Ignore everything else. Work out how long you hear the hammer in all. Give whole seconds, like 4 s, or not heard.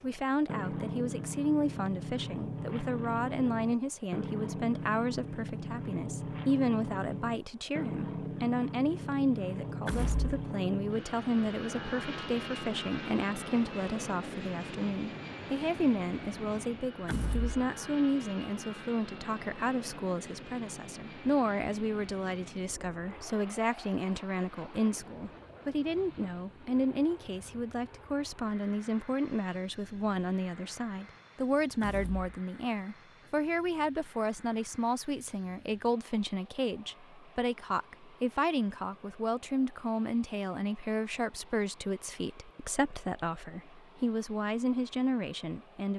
not heard.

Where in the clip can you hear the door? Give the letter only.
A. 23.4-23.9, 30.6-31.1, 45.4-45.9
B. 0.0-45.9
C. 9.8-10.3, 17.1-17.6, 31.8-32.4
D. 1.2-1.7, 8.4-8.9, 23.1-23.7
C.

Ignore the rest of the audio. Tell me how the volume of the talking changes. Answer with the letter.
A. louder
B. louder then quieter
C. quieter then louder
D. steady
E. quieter
D.